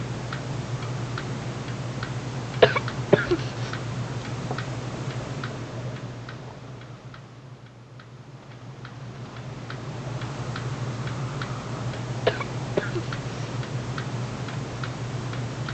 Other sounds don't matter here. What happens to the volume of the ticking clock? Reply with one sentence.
The volume of the ticking clock goes down, then up.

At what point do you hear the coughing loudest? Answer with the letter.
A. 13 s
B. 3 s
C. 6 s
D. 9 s
B.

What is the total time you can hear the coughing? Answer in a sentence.
The coughing can be heard for 2 seconds in total.